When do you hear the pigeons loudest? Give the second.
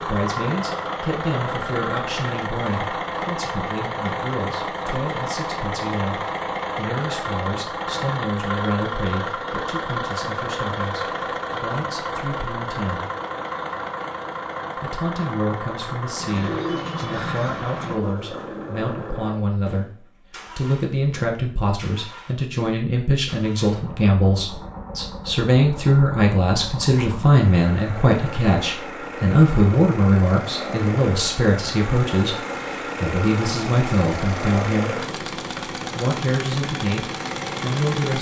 17 s.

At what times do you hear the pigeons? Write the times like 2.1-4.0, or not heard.
16.1-18.0.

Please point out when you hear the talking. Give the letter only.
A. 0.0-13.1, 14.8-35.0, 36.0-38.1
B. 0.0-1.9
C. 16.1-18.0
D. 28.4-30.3
A.